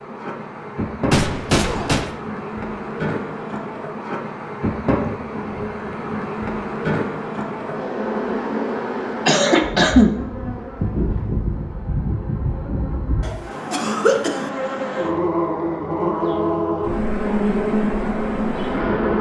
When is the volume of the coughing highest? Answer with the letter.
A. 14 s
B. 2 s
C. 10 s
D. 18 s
C.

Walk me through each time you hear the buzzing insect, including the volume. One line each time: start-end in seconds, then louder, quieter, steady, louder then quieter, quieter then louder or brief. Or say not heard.
0.0-19.1 louder.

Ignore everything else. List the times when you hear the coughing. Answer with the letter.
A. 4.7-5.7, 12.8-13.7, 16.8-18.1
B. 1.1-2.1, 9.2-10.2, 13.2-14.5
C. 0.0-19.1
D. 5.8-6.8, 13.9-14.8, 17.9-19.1
B.